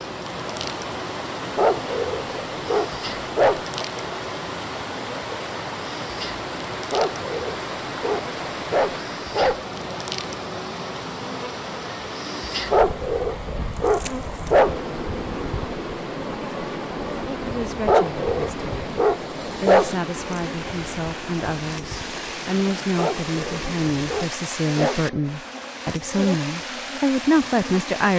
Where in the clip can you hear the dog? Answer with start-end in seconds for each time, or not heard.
1.6-3.6, 6.9-9.7, 12.7-14.9, 17.9-19.9, 22.9-25.1.